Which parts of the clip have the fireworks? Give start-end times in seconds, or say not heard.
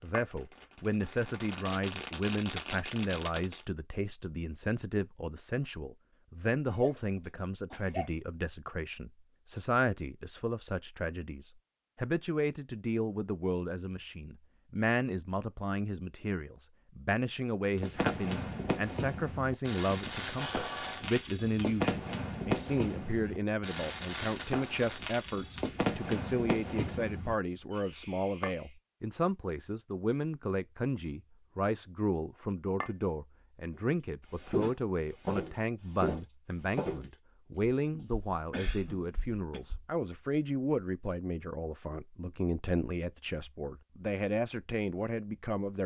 0.0-3.6, 17.8-28.8.